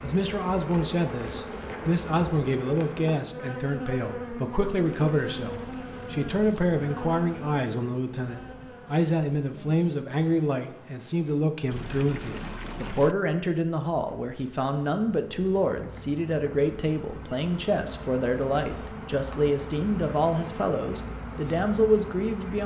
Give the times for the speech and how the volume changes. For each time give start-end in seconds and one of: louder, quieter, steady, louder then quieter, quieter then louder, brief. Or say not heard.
0.0-22.6 steady.